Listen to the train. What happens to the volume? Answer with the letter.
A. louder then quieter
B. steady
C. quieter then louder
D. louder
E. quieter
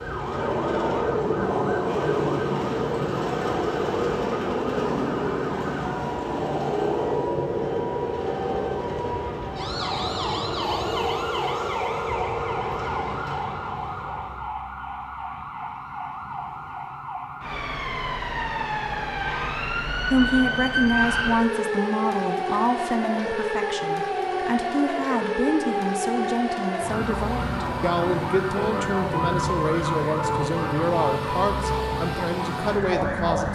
E.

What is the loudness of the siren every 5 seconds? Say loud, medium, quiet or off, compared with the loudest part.
medium, medium, medium, medium, loud, loud, loud.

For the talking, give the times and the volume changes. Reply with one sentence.
You can hear the talking from 20.1 to 33.4 s, at a steady volume.